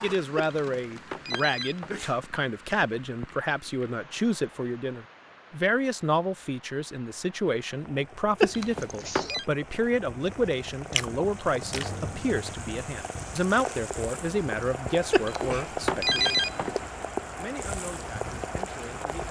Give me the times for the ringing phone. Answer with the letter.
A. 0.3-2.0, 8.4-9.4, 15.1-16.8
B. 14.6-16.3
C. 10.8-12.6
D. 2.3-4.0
A.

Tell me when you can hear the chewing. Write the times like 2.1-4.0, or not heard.
10.8-12.6.